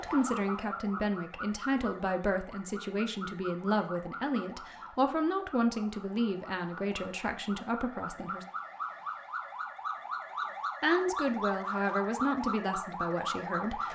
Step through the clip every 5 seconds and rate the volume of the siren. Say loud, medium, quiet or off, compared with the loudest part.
medium, medium, loud.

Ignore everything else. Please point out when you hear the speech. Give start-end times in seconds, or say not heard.
0.0-8.4, 10.8-13.9.